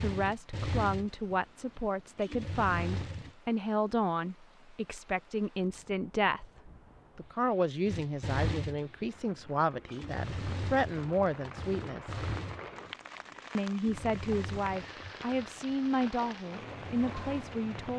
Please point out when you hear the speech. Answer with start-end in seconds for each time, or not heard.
0.0-12.2, 13.6-17.9.